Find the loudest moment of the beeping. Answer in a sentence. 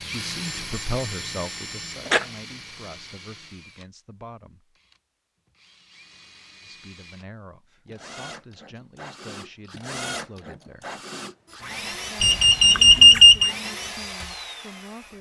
The volume of the beeping peaks at 13 seconds.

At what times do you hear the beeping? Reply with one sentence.
You can hear the beeping from 0.5 to 2.2 s and from 12.2 to 13.6 s.